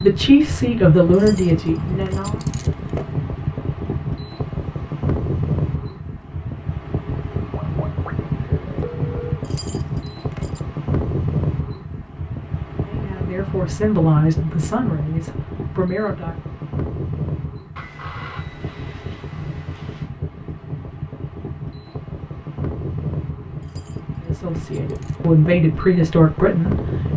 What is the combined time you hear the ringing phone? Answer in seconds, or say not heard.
4 s.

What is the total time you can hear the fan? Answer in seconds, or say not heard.
27 s.